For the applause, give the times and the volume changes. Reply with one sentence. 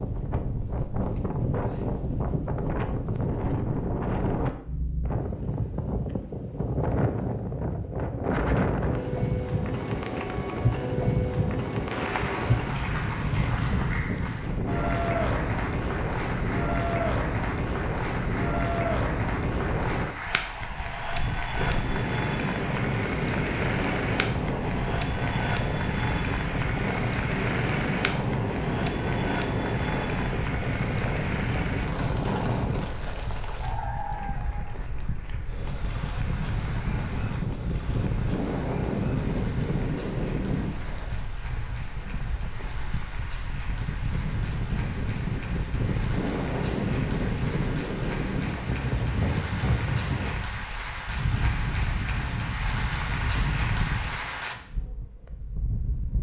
You can hear the applause from 11.9 to 54.5 s, getting quieter then louder.